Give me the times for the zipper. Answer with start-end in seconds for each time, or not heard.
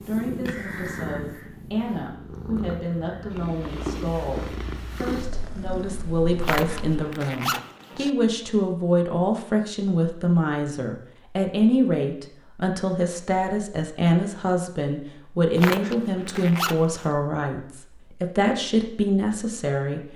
6.4-8.1, 15.6-17.1.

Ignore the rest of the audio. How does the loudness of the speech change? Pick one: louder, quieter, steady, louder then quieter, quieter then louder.
louder.